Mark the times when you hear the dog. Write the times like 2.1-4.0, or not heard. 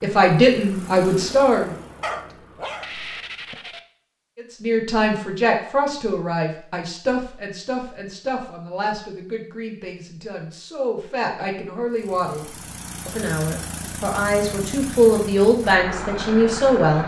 2.0-3.8.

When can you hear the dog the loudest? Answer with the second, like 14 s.
2 s.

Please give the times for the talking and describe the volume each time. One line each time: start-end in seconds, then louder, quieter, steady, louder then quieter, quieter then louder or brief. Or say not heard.
0.0-1.7 brief
4.3-17.0 quieter then louder.